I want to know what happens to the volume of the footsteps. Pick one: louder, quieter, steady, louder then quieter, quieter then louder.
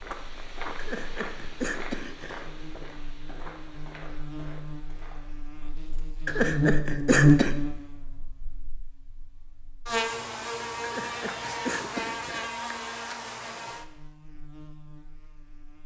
quieter.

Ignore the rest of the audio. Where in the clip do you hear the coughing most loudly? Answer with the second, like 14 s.
7 s.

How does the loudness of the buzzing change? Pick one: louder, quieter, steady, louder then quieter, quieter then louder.
louder then quieter.